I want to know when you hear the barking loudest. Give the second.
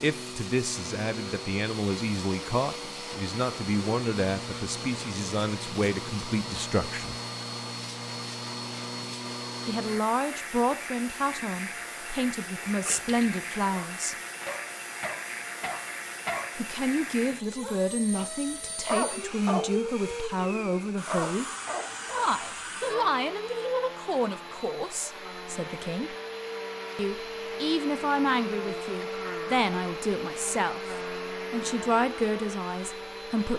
19 s.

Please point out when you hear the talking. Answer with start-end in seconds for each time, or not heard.
0.0-7.2, 9.7-14.2, 16.6-21.4, 22.1-26.1, 26.9-33.5.